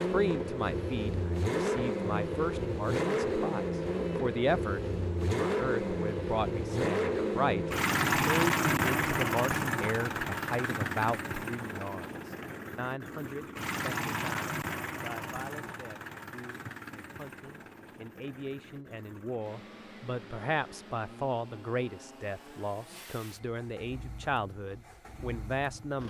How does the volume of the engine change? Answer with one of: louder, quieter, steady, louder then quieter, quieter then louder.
quieter.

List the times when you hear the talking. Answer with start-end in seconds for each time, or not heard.
0.1-26.0.